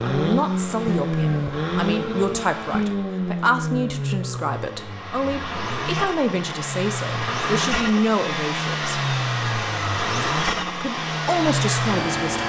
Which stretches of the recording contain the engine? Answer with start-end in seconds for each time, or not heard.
0.0-12.4.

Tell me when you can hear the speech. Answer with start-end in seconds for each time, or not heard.
0.0-8.9, 10.8-12.4.